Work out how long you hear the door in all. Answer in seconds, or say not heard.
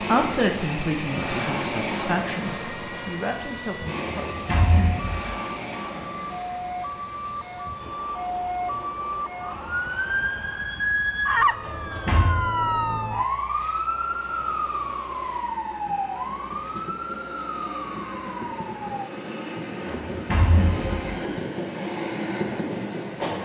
3 s.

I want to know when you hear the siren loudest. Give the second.
11 s.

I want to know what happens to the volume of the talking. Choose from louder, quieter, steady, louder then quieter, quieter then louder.
quieter.